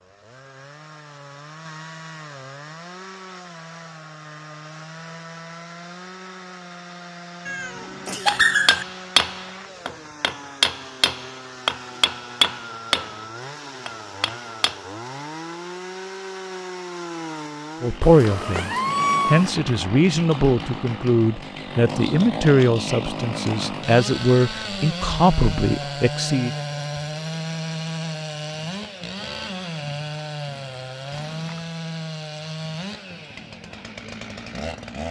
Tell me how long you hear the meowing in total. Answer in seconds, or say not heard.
3 s.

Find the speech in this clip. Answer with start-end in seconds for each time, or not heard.
17.8-26.5.